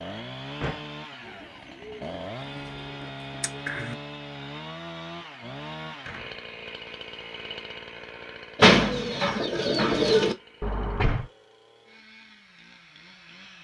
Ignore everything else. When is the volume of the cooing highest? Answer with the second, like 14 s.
9 s.